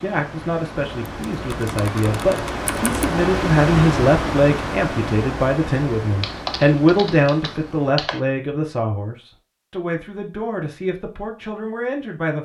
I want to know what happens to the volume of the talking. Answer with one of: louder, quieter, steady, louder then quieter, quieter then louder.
louder then quieter.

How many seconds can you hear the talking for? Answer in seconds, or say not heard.
12 s.